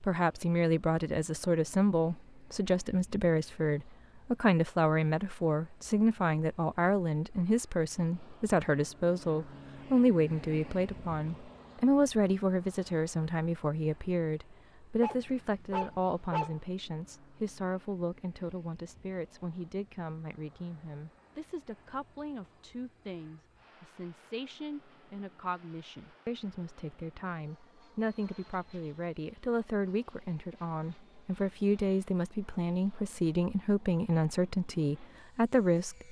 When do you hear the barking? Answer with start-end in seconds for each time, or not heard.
15.0-16.6.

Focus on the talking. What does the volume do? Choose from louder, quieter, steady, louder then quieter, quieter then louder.
quieter then louder.